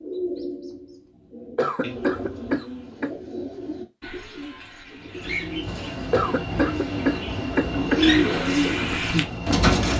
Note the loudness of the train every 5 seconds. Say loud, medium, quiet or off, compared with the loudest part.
off, loud.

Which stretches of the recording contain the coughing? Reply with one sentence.
You can hear the coughing from 1.6 to 3.1 s and from 6.1 to 8.1 s.